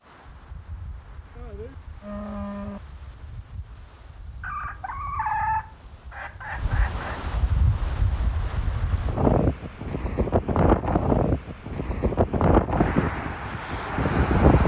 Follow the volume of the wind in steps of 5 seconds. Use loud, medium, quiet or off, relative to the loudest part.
quiet, medium, loud.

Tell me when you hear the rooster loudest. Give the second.
5 s.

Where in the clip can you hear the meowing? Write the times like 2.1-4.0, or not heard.
not heard.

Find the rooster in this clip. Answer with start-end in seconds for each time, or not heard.
4.4-7.2.